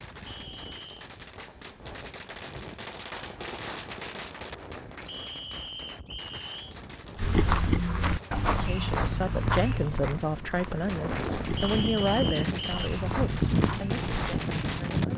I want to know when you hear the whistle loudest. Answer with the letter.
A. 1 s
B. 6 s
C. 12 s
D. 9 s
C.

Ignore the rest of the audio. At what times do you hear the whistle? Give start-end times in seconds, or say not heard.
0.2-1.1, 5.0-6.8, 11.6-12.9.